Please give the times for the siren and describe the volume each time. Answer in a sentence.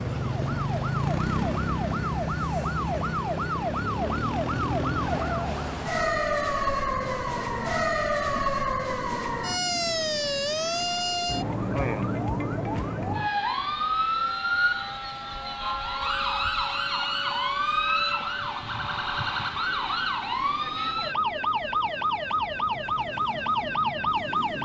The siren can be heard from 0.0 to 24.6 s, at a steady volume.